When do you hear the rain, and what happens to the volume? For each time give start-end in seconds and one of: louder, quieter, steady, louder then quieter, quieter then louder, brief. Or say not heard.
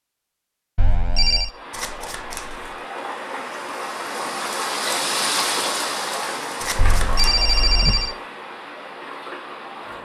1.4-10.0 louder then quieter.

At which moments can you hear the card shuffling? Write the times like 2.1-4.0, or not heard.
1.7-2.9, 6.6-8.0.